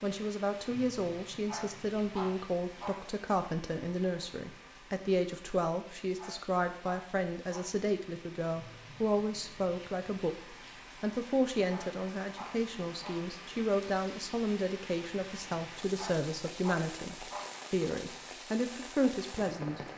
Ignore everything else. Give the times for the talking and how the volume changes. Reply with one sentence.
You can hear the talking from 0.0 to 19.8 s, at a steady volume.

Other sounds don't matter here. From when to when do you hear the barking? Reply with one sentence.
The barking can be heard from 1.4 to 3.1 s, from 6.2 to 7.8 s, from 11.7 to 13.3 s and from 15.9 to 17.6 s.